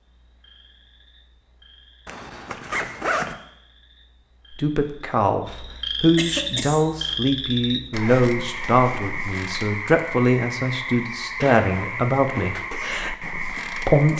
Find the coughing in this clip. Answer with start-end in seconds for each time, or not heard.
6.2-6.8.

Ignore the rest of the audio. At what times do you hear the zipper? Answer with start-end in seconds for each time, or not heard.
2.0-3.4, 11.4-12.6.